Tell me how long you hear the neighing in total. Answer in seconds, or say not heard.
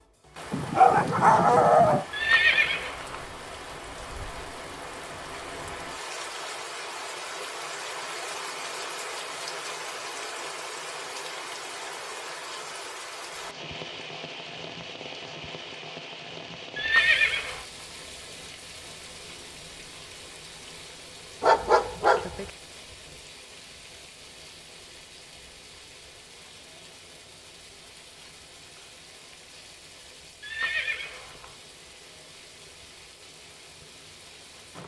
3 s.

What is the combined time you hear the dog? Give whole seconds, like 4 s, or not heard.
3 s.